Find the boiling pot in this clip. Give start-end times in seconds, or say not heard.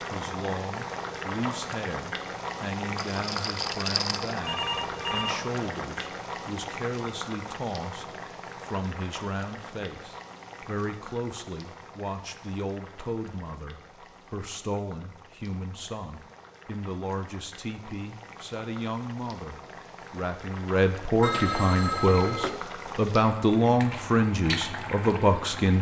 0.0-25.7.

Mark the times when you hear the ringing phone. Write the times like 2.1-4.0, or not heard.
4.4-5.3, 21.2-22.6.